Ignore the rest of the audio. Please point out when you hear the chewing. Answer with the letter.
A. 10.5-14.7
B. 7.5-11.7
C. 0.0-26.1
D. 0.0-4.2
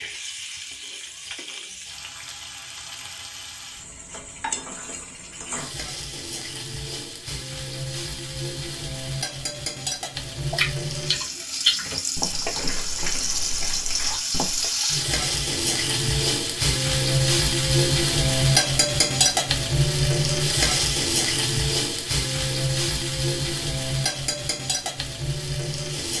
A.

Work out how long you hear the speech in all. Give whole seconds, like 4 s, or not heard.
not heard.